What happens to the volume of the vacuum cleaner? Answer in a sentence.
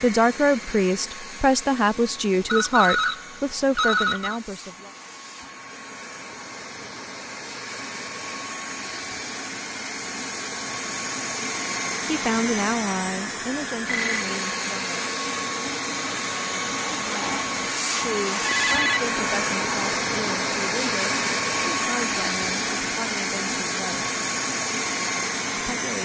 The loudness of the vacuum cleaner goes up.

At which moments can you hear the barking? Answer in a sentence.
The barking can't be heard in this clip.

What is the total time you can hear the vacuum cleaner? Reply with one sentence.
The vacuum cleaner can be heard for 26 seconds in total.